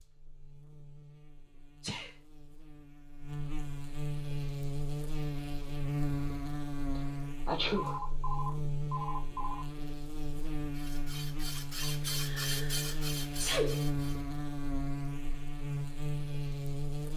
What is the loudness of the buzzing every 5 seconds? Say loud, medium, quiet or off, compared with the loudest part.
medium, loud, loud, loud.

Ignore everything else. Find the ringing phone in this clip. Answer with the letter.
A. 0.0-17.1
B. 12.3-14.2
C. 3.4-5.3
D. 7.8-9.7
D.